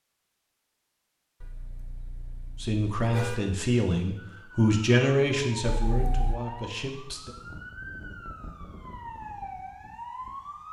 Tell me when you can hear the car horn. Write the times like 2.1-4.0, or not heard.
1.4-3.4, 5.7-6.4.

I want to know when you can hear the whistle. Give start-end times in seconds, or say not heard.
not heard.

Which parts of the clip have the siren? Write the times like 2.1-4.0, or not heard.
4.2-10.6.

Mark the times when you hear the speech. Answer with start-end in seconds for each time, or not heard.
2.6-7.3.